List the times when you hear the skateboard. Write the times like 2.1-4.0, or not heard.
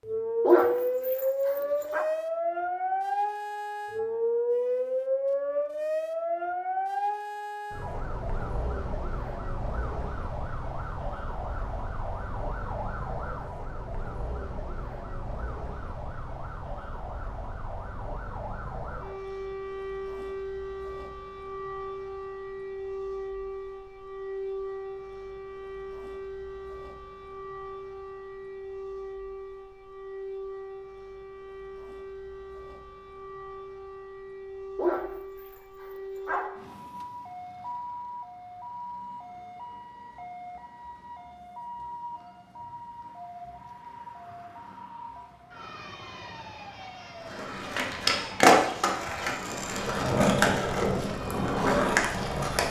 47.2-52.6.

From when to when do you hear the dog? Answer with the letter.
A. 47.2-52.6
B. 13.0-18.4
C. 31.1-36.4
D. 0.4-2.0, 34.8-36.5
D.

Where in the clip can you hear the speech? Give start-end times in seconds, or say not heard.
not heard.